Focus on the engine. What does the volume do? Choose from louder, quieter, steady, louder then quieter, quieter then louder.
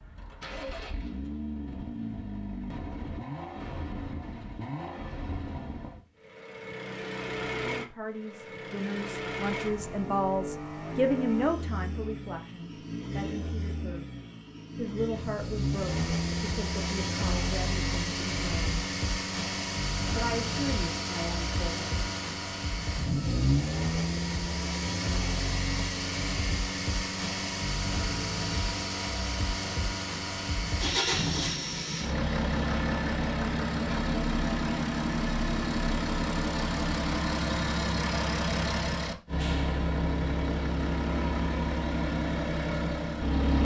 louder.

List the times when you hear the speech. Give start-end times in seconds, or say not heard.
7.5-14.1, 14.8-18.9, 20.1-21.9.